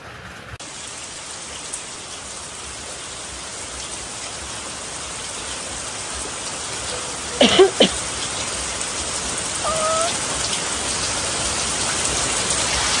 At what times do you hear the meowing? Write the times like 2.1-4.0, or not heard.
9.6-10.2.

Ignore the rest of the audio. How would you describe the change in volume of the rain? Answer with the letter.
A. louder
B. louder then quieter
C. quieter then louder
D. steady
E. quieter
A.